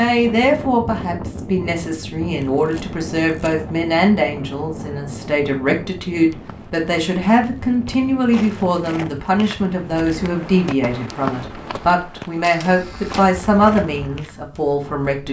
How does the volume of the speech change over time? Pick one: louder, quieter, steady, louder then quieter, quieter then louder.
steady.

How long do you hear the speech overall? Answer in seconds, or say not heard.
15 s.